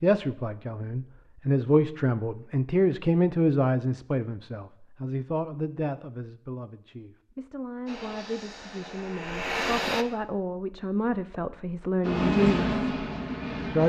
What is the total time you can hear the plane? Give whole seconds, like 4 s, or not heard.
4 s.